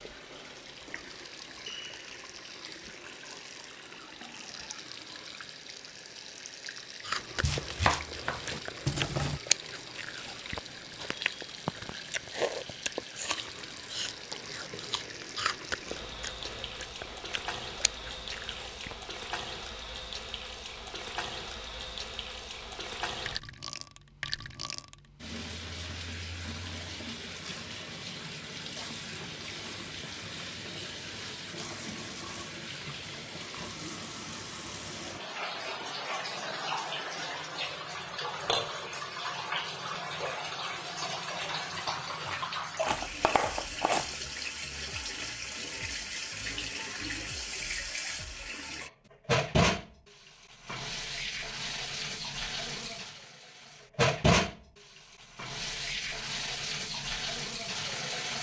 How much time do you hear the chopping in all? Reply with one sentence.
The chopping can be heard for 3 seconds in total.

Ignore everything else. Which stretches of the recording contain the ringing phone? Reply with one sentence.
You can't hear the ringing phone here.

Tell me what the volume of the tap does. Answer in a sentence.
The volume of the tap goes up.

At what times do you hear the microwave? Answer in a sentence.
The microwave can't be heard in this clip.